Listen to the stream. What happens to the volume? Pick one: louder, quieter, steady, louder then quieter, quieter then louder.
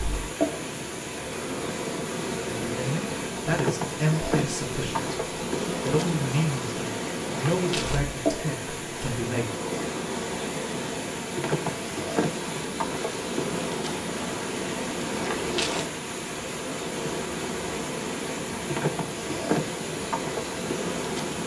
steady.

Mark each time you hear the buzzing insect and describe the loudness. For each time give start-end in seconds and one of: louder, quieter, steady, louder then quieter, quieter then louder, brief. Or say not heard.
0.0-21.4 steady.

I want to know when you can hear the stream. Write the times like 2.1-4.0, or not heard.
0.0-21.4.